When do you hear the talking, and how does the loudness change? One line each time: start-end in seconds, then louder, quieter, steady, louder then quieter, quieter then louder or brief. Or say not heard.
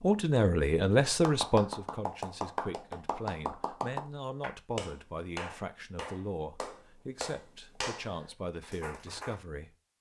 0.0-9.8 quieter.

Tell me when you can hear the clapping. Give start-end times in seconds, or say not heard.
1.2-9.4.